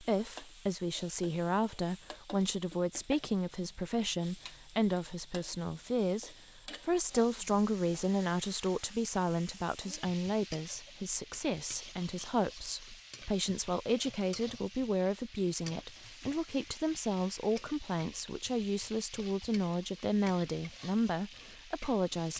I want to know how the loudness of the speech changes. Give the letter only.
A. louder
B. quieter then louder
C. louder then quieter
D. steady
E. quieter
D.